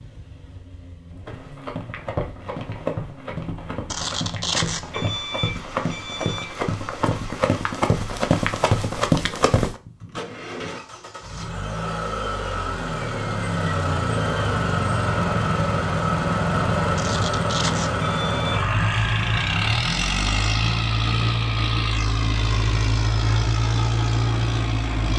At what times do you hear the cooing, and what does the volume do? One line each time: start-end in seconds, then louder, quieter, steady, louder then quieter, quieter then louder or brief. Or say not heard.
not heard.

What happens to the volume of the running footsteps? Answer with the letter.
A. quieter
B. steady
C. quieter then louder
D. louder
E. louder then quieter
D.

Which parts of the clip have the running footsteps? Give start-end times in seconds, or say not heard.
1.2-9.8.